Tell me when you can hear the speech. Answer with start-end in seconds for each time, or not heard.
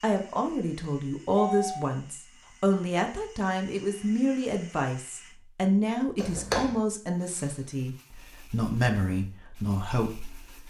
0.0-10.6.